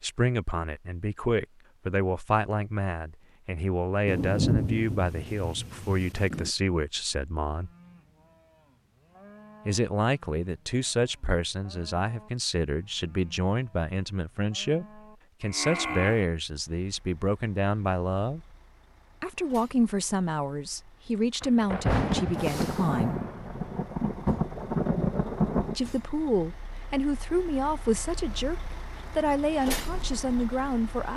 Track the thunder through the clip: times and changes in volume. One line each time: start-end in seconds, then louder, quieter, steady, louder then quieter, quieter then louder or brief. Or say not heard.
4.0-6.5 brief
21.4-25.8 quieter then louder.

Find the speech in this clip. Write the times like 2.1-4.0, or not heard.
0.0-7.7, 9.7-18.4, 19.2-23.2, 25.7-31.1.